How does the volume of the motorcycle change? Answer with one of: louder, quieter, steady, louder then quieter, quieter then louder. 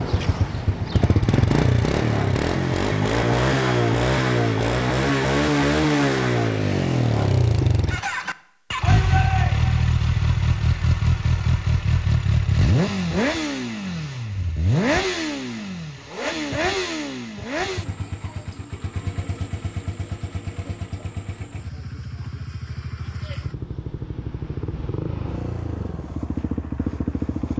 quieter.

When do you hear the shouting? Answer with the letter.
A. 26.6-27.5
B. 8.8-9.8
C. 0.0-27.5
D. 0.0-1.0
B.